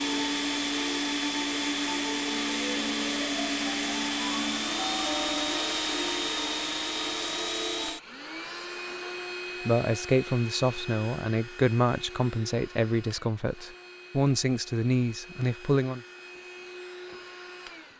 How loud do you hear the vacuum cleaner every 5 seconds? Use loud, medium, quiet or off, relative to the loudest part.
loud, loud, quiet, quiet.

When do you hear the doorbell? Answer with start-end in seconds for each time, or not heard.
4.8-5.8.